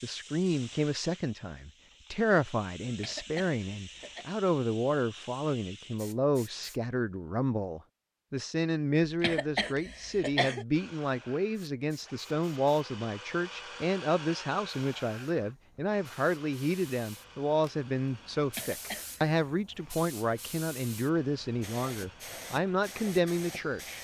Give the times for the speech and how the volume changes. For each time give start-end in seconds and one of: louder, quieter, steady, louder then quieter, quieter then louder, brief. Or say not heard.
0.0-24.0 steady.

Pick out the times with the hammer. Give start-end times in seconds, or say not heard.
not heard.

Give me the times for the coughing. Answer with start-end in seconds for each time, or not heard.
2.8-4.2, 9.1-10.7, 18.4-19.2.